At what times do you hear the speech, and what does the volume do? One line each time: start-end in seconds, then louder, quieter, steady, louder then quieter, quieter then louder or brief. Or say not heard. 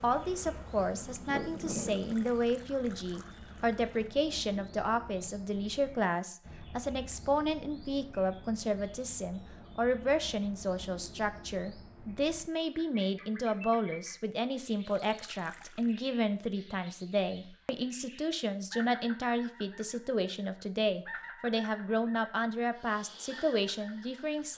0.0-24.5 steady.